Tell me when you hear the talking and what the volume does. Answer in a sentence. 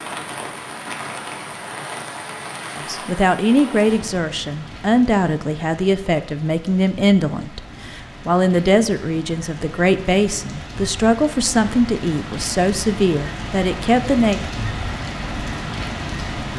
The talking can be heard from 2.8 to 14.4 s, at a steady volume.